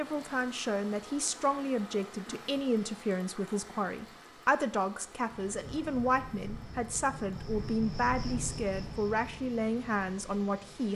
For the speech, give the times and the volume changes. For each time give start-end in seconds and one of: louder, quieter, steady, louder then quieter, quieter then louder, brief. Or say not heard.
0.0-10.9 steady.